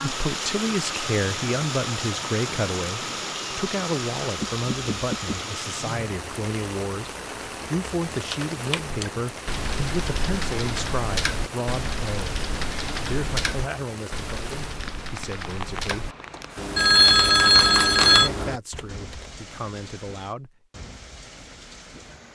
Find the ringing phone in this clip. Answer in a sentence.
You can hear the ringing phone from 4.3 to 5.5 s and from 15.9 to 18.3 s.